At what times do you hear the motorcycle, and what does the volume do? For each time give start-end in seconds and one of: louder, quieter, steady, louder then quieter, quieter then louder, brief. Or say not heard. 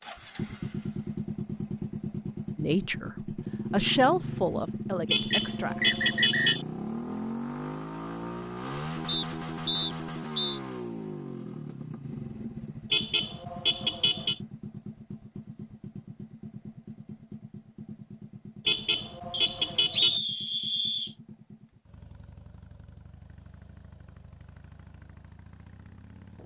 0.0-26.4 quieter.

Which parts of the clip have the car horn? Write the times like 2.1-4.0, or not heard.
5.1-6.7, 12.9-14.4, 18.6-20.2.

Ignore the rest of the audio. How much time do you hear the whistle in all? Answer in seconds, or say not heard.
5 s.